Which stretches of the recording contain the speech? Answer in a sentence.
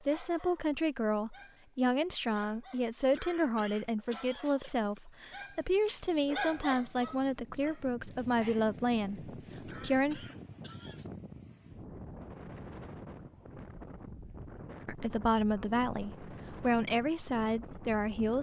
You can hear the speech from 0.1 to 10.2 s and from 14.8 to 18.3 s.